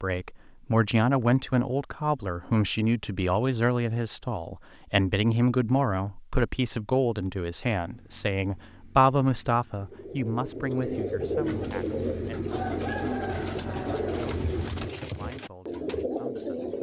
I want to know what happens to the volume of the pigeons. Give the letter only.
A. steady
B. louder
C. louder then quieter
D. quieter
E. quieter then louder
A.